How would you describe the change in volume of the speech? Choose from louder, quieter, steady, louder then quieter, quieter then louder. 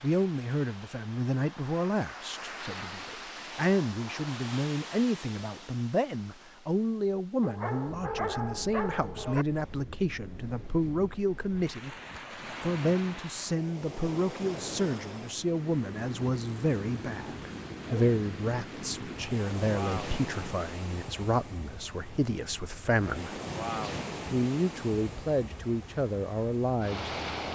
steady.